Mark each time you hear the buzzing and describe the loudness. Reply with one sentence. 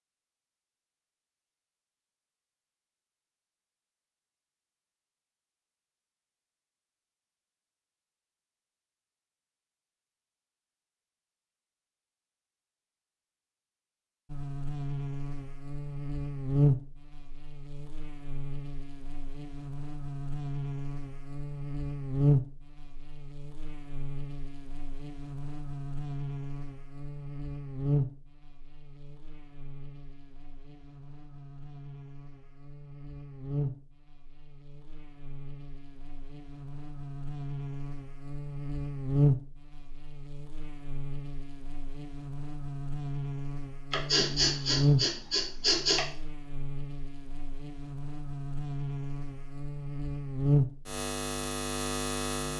The buzzing can be heard from 14.3 to 52.5 s, getting quieter then louder.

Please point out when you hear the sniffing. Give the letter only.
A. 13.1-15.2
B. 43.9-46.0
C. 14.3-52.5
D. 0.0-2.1
B.